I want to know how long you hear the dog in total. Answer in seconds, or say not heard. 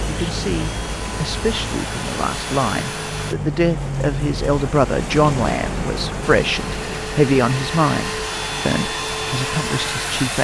not heard.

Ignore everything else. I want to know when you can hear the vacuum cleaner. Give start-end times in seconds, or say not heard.
0.0-3.4, 6.2-10.4.